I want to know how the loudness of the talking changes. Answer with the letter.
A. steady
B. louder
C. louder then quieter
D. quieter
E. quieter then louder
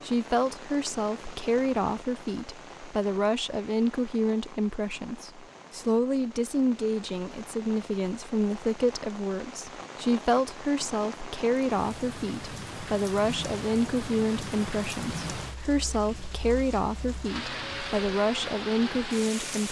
A.